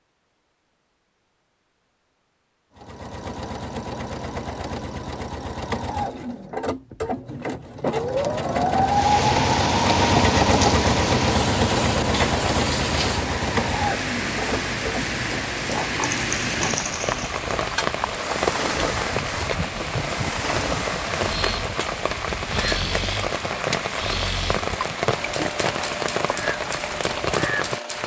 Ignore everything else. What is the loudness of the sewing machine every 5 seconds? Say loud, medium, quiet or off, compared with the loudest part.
medium, loud, loud, medium, medium, medium.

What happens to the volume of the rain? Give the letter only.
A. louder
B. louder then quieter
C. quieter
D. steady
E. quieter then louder
D.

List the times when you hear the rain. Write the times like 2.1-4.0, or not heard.
8.8-28.0.